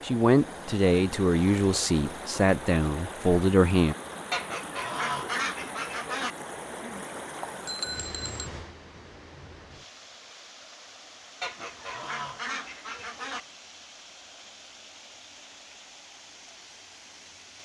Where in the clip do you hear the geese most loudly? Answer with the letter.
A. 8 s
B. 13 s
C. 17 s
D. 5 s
D.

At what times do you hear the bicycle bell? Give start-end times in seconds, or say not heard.
7.7-8.5.